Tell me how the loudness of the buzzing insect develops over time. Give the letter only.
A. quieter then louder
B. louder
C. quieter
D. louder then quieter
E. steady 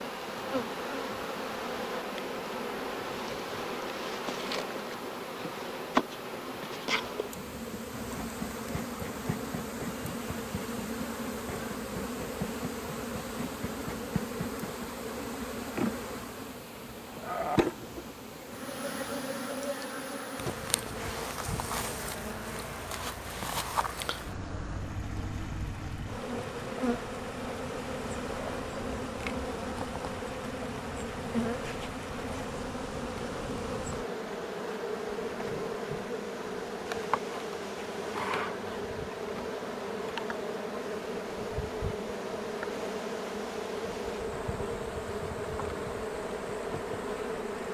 E.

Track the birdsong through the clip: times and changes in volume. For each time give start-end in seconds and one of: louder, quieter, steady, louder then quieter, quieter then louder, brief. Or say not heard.
not heard.